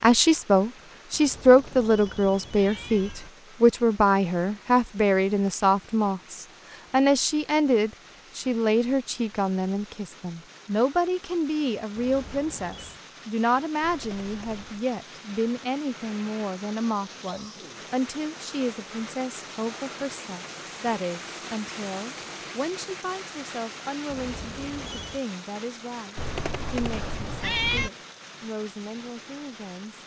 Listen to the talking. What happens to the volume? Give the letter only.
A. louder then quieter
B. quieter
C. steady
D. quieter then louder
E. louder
B.